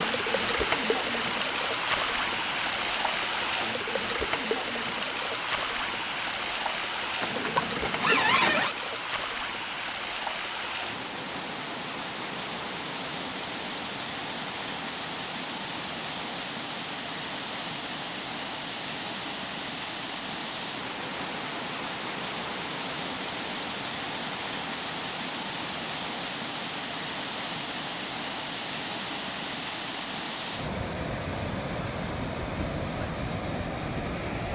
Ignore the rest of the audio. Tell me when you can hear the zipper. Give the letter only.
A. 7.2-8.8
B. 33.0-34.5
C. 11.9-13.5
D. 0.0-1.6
A.